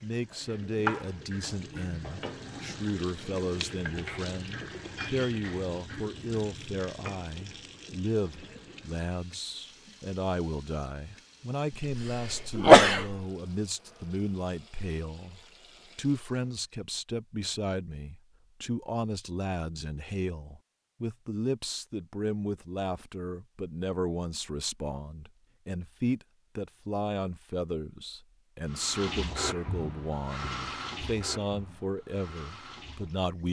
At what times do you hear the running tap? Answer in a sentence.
The running tap can be heard from 0.0 to 16.7 s and from 28.6 to 33.4 s.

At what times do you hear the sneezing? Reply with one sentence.
You can hear the sneezing from 11.8 to 13.2 s.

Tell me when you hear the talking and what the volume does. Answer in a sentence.
You can hear the talking from 0.0 to 33.4 s, at a steady volume.